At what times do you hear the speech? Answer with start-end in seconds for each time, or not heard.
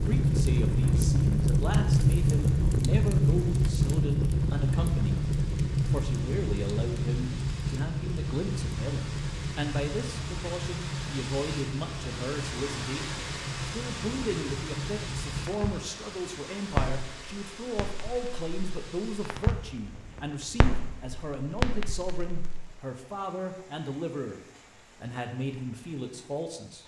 0.1-5.2, 5.9-24.4, 25.0-26.8.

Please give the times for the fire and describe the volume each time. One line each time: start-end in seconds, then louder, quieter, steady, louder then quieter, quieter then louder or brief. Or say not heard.
0.0-22.8 quieter.